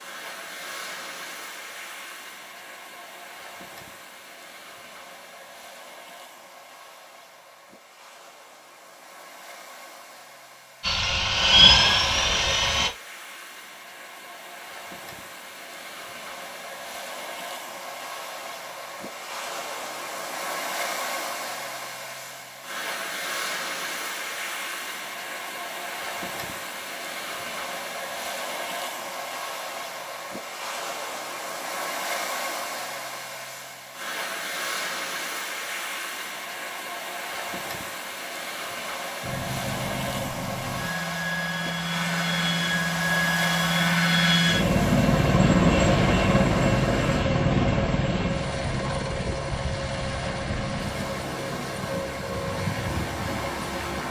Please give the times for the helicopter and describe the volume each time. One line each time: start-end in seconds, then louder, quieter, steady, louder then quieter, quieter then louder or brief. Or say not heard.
10.8-12.9 brief
39.2-54.0 louder then quieter.